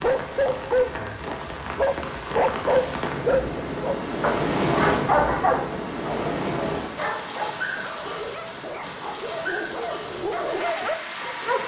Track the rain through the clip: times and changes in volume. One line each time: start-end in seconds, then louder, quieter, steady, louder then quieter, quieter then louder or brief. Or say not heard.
0.0-11.6 louder then quieter.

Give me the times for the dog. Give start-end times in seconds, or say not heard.
0.0-11.6.